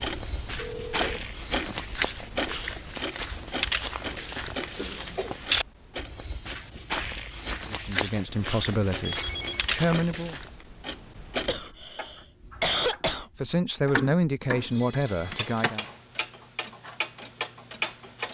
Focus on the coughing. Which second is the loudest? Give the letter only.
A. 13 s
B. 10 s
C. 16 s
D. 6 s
A.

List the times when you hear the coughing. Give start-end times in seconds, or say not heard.
4.8-5.3, 11.4-13.3.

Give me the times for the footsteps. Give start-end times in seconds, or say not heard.
0.0-10.7.